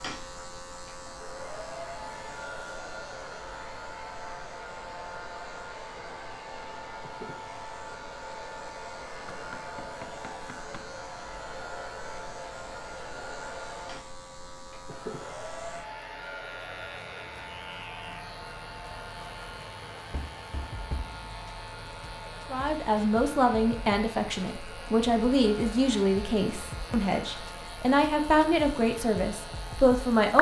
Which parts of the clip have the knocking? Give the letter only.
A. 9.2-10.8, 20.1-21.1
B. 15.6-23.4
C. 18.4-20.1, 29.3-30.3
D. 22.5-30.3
A.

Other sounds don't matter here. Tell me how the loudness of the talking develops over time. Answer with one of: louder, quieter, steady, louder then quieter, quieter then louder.
steady.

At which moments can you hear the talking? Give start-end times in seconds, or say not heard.
22.5-30.3.